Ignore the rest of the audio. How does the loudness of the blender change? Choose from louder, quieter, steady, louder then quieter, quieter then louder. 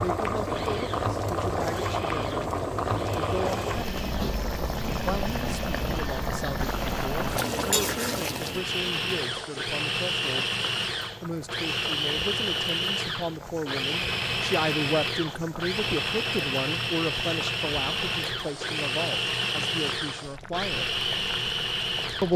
louder.